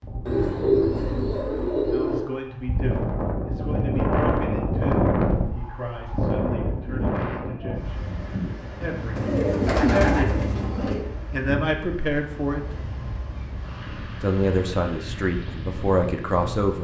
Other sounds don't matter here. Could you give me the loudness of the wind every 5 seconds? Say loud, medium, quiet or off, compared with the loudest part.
loud, loud, medium, medium.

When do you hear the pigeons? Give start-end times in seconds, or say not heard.
0.2-2.2, 9.2-11.1.